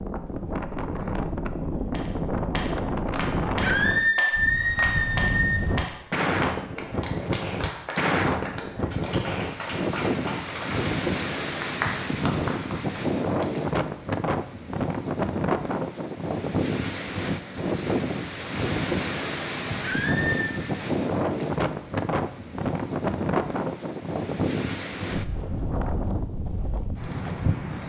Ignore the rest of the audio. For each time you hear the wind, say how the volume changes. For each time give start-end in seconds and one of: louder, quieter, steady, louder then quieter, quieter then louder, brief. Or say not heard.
0.0-27.8 steady.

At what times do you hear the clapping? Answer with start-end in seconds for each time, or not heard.
1.9-13.7.